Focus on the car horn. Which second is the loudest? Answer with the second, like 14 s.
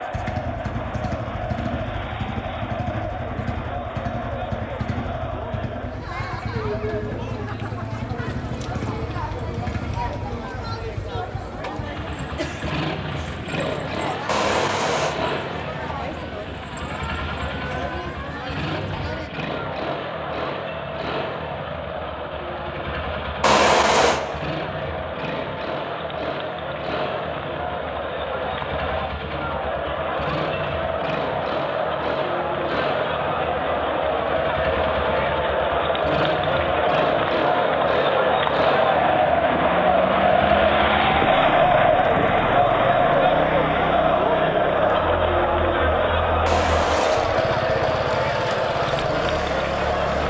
24 s.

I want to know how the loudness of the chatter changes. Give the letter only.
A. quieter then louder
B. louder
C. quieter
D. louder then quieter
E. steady
B.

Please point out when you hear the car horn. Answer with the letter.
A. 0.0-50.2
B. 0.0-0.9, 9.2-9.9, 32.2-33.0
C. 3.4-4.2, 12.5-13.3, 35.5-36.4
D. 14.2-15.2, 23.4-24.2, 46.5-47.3
D.